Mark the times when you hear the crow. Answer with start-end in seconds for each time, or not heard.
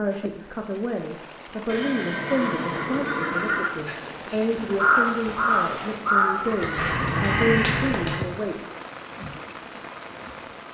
3.8-8.2.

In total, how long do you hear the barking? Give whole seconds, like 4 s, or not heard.
not heard.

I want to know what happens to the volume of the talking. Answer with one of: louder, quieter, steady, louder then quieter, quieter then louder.
steady.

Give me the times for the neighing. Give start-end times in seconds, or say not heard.
1.6-3.7, 6.5-8.3.